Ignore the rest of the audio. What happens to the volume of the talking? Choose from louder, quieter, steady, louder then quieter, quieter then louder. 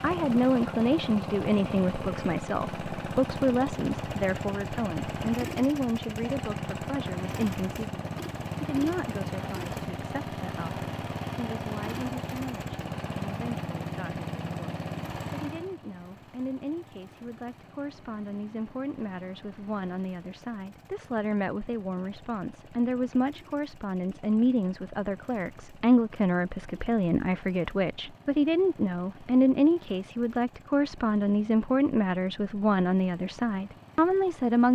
quieter then louder.